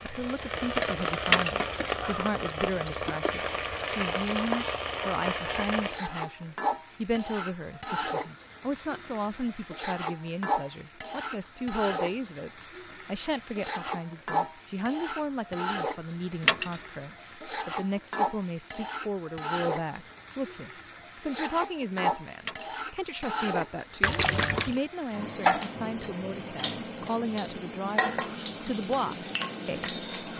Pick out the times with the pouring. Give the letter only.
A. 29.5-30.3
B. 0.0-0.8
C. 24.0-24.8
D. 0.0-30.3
C.